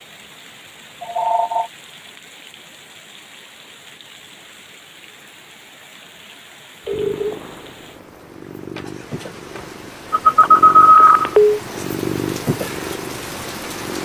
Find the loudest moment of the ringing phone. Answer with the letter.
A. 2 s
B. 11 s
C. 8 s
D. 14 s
B.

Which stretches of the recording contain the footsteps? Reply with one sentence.
You can't hear the footsteps here.